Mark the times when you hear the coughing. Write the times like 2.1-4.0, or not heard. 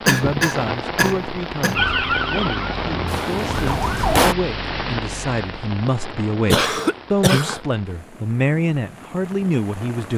0.1-1.9, 6.5-7.6.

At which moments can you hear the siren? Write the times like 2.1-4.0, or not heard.
1.8-4.3.